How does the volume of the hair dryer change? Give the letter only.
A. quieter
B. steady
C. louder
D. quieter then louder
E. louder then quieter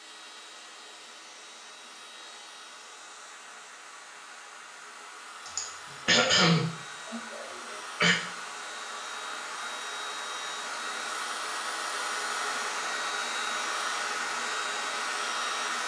C.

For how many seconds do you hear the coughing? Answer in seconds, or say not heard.
3 s.